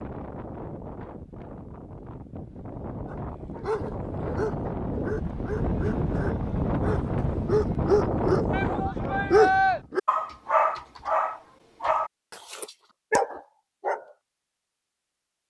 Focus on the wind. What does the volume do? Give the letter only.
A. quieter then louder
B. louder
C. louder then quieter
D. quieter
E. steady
B.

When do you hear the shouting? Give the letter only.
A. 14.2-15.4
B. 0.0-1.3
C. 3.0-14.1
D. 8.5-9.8
D.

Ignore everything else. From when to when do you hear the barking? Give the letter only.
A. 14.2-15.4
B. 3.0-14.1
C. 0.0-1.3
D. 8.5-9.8
B.